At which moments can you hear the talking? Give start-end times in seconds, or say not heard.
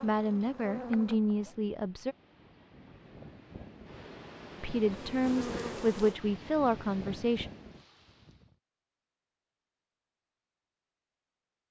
0.0-2.1, 4.5-7.5.